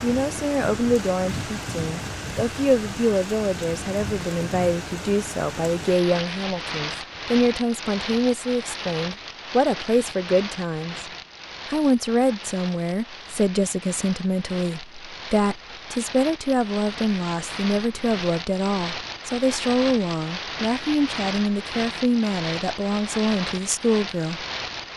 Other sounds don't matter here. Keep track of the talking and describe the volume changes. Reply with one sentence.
The volume of the talking stays about the same.